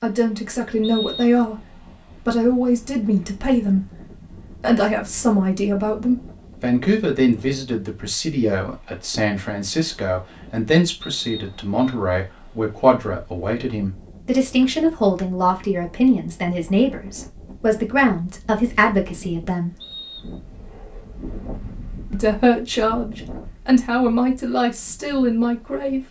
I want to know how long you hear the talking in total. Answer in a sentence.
The talking can be heard for 23 seconds in total.